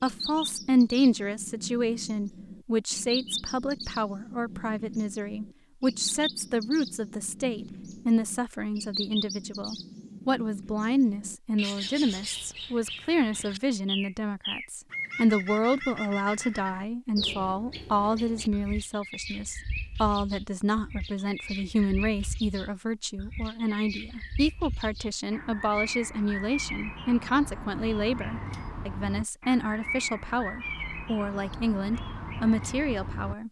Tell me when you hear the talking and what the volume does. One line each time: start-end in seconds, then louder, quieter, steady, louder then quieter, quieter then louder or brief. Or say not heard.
0.0-33.4 steady.